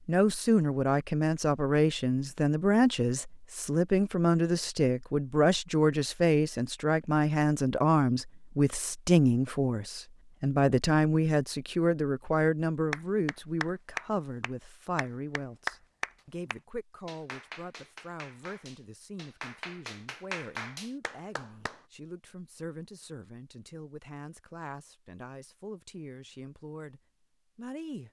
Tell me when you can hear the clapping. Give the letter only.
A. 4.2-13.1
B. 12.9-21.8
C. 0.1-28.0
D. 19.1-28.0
B.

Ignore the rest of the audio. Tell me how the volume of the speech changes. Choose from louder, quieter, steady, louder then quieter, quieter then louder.
quieter.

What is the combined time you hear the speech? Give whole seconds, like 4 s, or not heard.
28 s.